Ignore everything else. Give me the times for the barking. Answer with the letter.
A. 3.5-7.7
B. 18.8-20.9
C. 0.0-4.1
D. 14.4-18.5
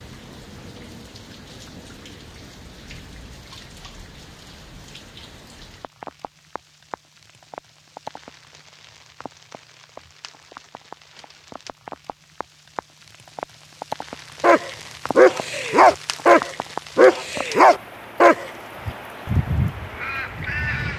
D.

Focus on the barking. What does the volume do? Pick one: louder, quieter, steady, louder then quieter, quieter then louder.
steady.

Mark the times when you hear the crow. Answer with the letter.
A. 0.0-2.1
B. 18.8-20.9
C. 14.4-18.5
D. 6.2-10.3
B.